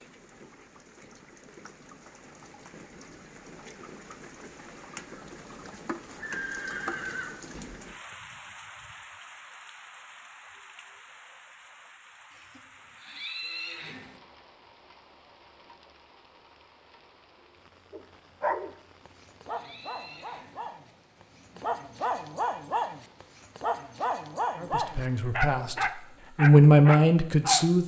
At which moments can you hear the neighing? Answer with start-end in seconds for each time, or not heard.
6.2-7.3, 12.3-14.2, 18.8-20.6.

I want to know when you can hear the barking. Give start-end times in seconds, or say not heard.
17.9-27.7.